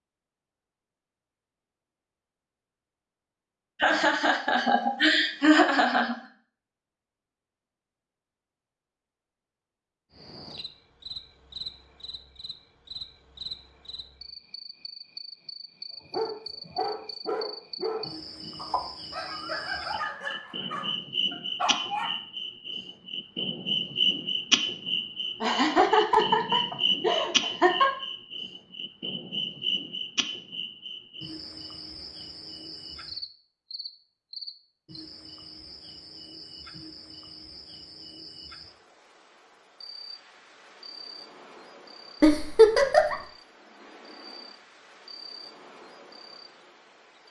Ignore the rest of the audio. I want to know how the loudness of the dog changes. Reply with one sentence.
The loudness of the dog stays about the same.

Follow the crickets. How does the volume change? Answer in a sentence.
The loudness of the crickets goes up, then down.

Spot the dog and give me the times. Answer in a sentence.
The dog can be heard from 16.1 to 22.1 s.